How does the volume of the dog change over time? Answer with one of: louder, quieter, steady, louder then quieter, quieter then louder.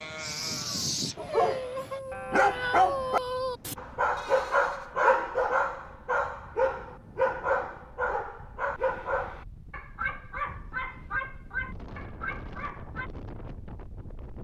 quieter.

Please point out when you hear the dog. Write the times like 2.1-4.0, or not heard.
1.1-13.1.